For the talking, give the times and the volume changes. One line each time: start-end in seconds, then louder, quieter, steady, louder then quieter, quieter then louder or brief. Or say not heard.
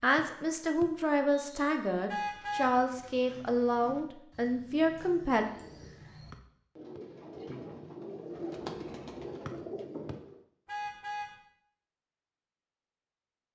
0.0-5.5 steady.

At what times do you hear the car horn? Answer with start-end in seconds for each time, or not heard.
2.0-2.8, 10.7-11.3.